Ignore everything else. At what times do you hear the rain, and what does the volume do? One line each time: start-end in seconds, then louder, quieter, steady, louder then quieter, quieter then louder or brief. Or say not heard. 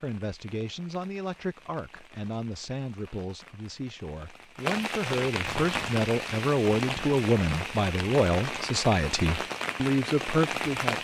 0.0-10.9 louder.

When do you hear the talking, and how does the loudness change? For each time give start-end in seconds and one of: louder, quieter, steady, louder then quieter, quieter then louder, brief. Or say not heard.
0.0-10.9 louder.